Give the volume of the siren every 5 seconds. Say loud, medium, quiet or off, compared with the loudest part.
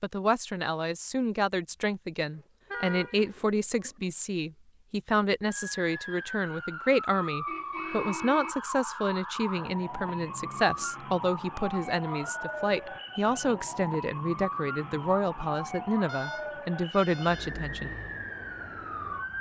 off, loud, loud, loud.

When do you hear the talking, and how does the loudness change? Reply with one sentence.
The talking can be heard from 0.0 to 17.9 s, at a steady volume.